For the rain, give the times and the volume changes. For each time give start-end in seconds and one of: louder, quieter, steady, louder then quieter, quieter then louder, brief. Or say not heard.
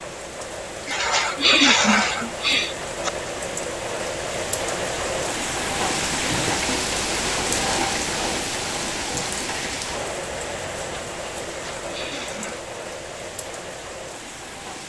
0.0-14.8 louder then quieter.